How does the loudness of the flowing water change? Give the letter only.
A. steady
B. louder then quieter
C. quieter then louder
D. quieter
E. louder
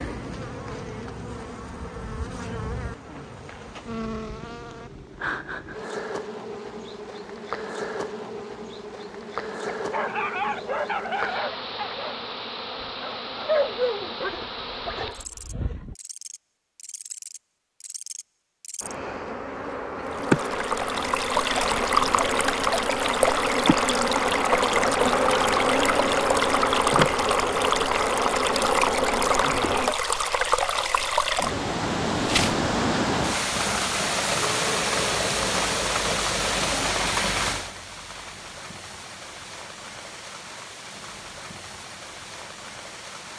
D.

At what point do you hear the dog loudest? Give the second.
14 s.